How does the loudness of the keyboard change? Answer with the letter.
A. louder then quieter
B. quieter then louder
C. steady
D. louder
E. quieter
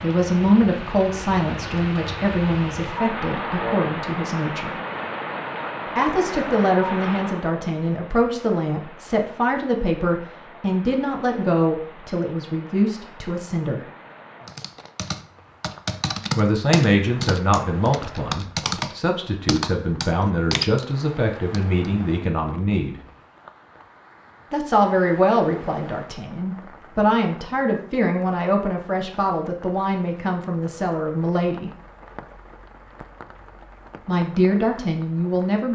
D.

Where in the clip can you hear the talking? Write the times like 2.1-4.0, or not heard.
0.0-4.8, 6.0-13.8, 16.4-23.0, 24.5-31.7, 34.0-35.7.